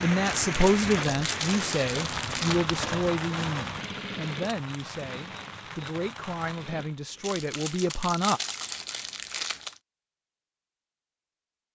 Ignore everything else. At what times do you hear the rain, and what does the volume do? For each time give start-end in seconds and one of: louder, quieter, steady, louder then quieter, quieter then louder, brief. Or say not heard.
0.0-7.0 quieter.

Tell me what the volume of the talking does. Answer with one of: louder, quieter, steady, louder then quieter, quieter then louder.
quieter.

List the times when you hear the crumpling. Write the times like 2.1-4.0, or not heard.
0.2-2.7, 7.2-9.8.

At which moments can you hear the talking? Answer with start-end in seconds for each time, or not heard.
0.0-8.4.